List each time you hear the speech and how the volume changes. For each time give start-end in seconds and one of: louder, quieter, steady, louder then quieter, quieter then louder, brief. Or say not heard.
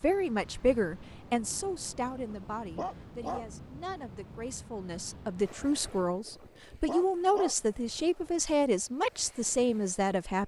0.0-10.4 quieter then louder.